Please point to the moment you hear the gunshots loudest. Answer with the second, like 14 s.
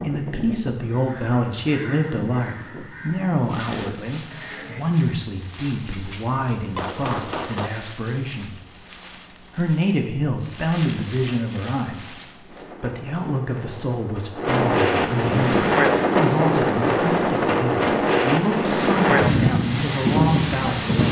7 s.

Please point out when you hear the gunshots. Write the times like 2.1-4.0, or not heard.
5.8-7.7.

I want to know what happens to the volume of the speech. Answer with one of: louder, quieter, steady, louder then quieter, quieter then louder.
steady.